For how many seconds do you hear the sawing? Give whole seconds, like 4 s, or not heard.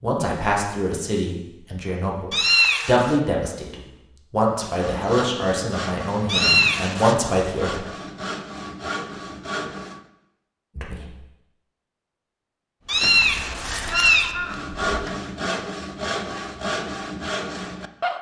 9 s.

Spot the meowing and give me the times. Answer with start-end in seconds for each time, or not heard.
2.3-3.1, 6.2-7.2, 12.8-14.3.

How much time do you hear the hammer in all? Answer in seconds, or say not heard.
not heard.